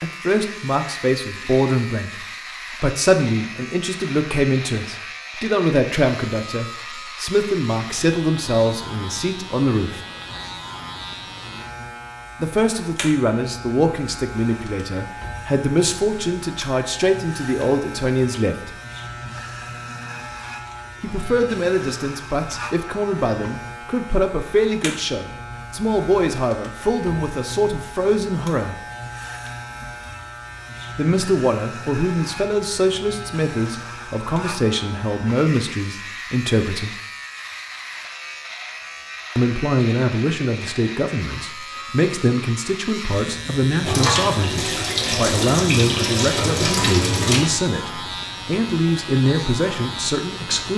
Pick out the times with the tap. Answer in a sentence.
You can hear the tap from 43.8 to 47.5 s.